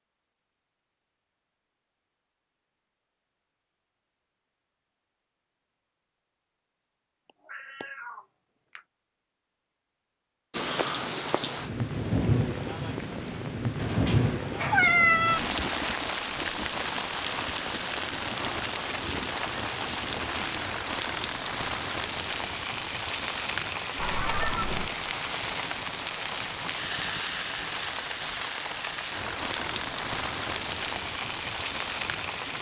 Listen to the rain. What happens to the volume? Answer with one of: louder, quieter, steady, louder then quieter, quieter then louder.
steady.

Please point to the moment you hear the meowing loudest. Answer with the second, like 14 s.
15 s.